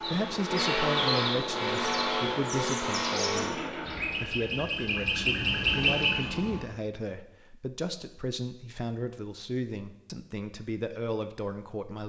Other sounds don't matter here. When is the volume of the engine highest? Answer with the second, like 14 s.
1 s.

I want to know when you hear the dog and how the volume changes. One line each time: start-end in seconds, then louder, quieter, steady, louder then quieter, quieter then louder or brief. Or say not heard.
not heard.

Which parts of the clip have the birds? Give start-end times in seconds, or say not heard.
0.0-6.6.